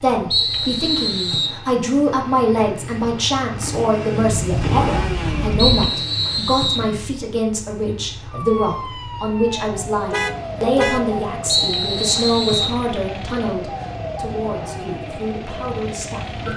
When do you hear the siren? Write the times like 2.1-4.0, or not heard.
8.3-16.5.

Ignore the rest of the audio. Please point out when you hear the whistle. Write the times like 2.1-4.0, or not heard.
0.3-1.6, 5.5-6.9, 11.4-12.8.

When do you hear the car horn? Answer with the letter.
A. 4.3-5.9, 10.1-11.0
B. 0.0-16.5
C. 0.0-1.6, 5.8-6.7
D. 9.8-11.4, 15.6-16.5
A.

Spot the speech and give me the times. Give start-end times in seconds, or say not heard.
0.0-16.5.